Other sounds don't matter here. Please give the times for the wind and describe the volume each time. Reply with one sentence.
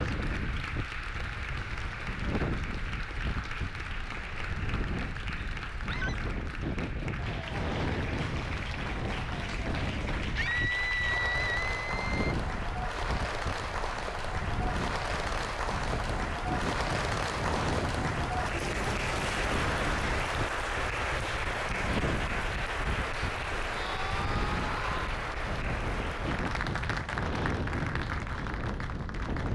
The wind can be heard from 0.0 to 29.5 s, at a steady volume.